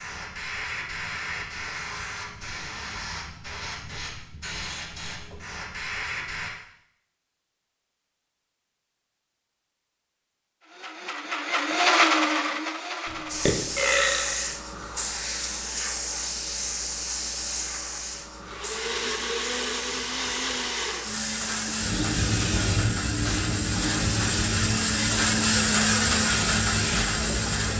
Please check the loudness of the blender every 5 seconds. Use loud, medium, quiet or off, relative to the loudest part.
off, off, loud, medium, medium, loud.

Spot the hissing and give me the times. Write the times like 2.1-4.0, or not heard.
0.0-6.5, 13.2-27.7.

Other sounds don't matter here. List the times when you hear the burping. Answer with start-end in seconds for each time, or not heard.
13.1-14.6.